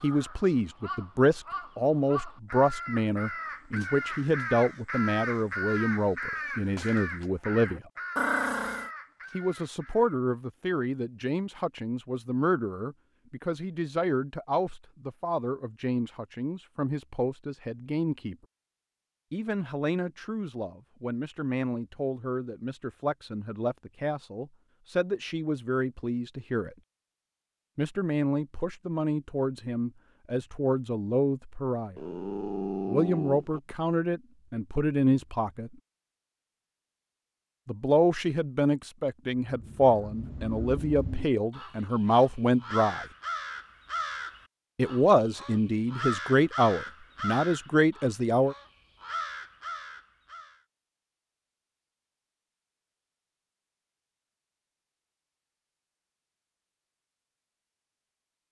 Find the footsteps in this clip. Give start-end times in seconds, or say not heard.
not heard.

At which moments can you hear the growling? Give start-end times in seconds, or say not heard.
8.2-8.9, 31.9-33.6.